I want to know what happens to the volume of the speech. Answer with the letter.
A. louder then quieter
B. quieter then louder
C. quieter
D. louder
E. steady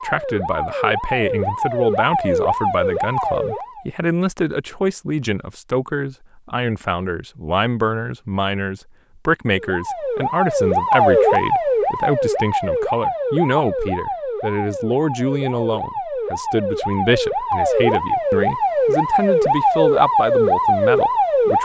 E.